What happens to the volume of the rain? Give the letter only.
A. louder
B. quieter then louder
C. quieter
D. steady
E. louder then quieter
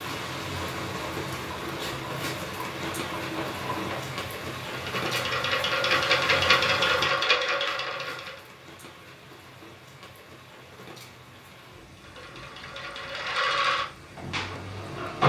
C.